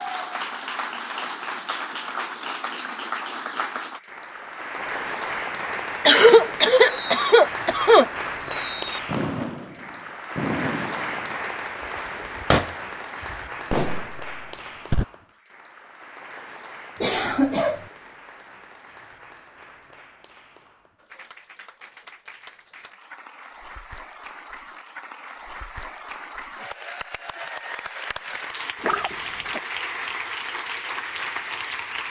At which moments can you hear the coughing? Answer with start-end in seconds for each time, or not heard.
6.0-8.1, 17.0-17.8, 28.8-29.6.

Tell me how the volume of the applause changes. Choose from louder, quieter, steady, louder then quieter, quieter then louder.
quieter then louder.